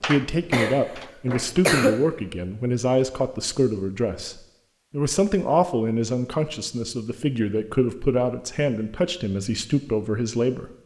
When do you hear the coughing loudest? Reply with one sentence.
The volume of the coughing peaks at 2 seconds.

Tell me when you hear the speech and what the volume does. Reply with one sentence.
The speech can be heard from 0.0 to 10.7 s, at a steady volume.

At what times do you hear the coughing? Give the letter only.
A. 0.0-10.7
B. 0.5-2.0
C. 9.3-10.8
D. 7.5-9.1
B.